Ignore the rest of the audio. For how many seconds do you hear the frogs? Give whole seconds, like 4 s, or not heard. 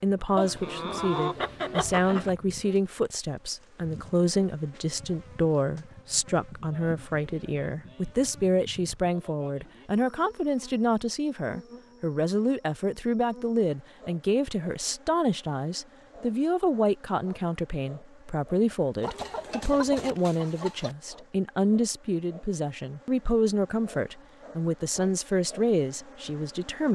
not heard.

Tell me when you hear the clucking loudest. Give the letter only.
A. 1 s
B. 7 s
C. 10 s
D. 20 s
A.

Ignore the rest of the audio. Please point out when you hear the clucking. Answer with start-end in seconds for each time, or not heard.
0.3-2.3, 19.0-20.9.